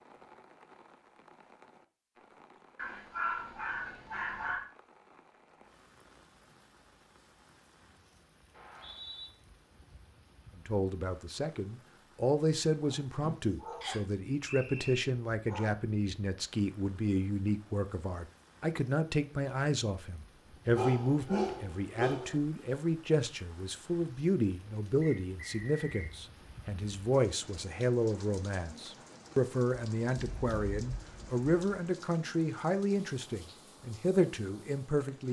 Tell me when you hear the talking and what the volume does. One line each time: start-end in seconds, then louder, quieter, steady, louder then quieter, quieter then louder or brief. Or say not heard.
10.6-35.2 steady.